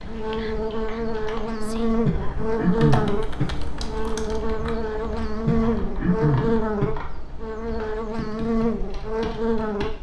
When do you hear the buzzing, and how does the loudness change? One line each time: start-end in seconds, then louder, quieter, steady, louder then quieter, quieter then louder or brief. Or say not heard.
0.0-9.9 steady.